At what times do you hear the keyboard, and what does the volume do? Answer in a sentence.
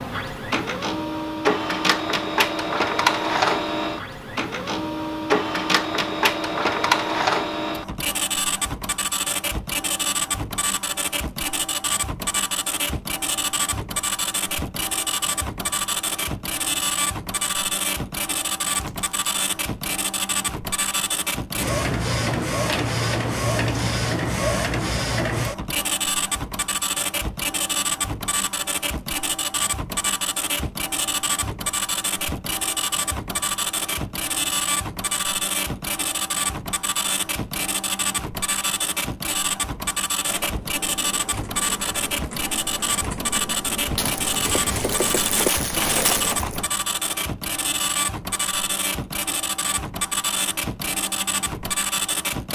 The keyboard can be heard from 40.2 to 46.6 s, getting louder.